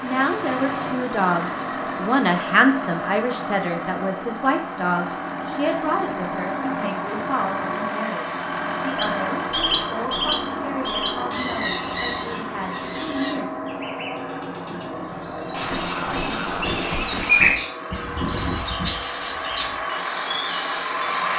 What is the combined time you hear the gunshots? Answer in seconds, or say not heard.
2 s.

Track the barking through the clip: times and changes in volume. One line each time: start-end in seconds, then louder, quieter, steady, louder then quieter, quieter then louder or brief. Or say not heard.
not heard.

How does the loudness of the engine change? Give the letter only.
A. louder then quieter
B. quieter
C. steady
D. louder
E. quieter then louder
C.